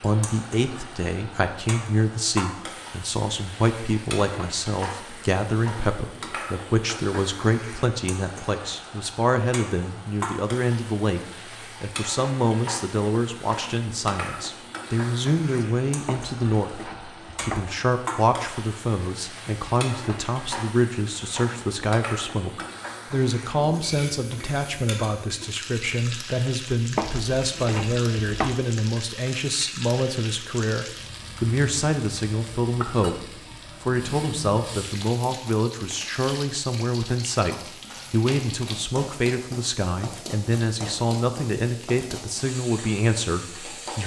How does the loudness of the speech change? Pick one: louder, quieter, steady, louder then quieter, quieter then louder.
steady.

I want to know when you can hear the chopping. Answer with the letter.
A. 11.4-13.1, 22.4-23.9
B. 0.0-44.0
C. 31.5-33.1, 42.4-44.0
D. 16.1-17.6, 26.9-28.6
D.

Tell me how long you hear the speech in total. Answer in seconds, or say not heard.
44 s.